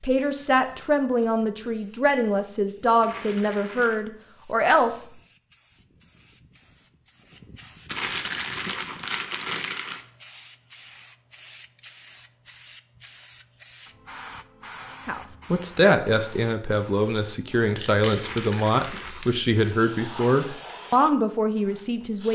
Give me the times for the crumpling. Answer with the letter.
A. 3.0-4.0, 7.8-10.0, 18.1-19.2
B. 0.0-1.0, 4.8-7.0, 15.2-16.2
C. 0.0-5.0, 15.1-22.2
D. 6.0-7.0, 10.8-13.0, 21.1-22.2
A.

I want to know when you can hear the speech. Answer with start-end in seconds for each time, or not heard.
0.0-5.0, 15.1-22.2.